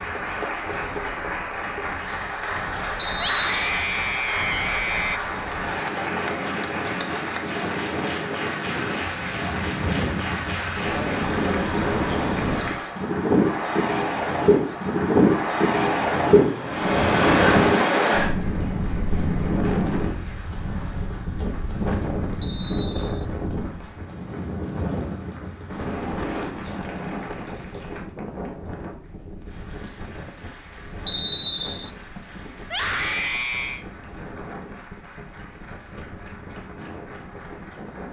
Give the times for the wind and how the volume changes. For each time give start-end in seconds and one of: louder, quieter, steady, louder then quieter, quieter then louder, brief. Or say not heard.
0.0-38.0 louder then quieter.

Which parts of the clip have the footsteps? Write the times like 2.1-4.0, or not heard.
not heard.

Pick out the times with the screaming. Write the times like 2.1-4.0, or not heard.
3.1-5.2, 32.6-33.9.